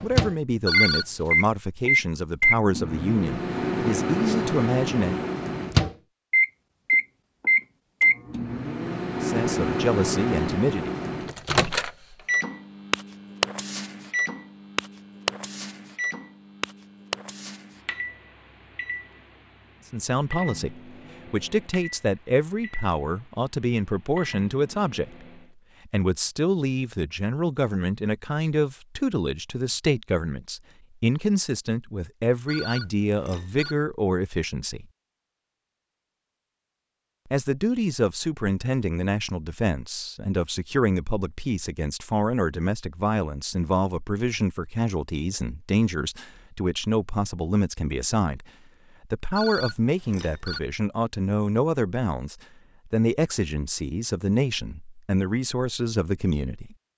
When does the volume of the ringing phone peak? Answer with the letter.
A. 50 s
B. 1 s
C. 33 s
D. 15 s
B.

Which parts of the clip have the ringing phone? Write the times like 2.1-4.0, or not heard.
0.7-1.5, 32.5-33.8, 49.4-50.6.